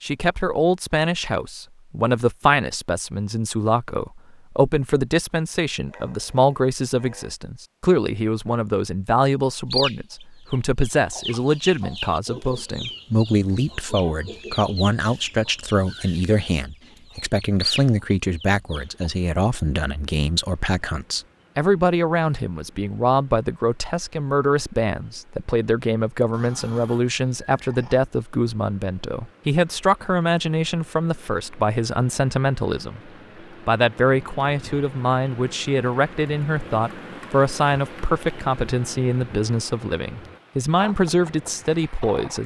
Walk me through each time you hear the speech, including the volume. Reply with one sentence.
You can hear the speech from 0.0 to 42.4 s, at a steady volume.